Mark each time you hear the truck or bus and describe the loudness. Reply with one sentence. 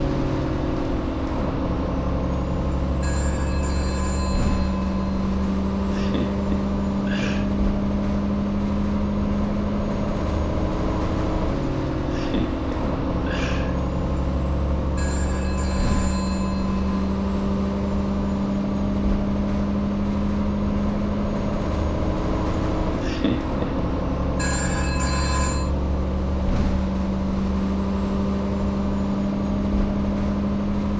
You can hear the truck or bus from 0.0 to 30.9 s, at a steady volume.